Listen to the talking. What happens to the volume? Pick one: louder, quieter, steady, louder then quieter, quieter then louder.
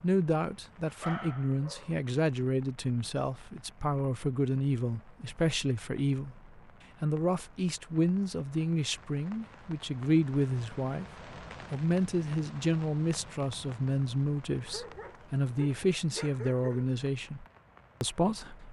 steady.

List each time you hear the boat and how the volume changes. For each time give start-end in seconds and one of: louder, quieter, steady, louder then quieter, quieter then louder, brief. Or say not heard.
not heard.